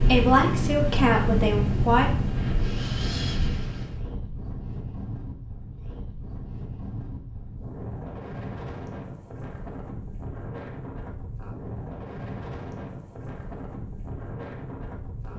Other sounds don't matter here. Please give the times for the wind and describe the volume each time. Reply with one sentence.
You can hear the wind from 0.0 to 15.3 s, getting quieter.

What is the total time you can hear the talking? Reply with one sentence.
The talking can be heard for 2 seconds in total.